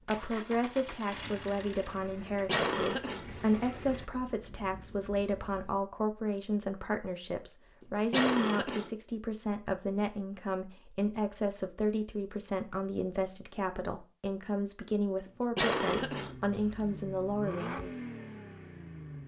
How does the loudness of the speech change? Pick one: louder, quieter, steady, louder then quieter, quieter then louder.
steady.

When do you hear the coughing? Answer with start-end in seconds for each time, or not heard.
2.5-3.2, 8.1-8.9, 15.6-16.4.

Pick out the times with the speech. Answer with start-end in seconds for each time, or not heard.
0.1-17.9.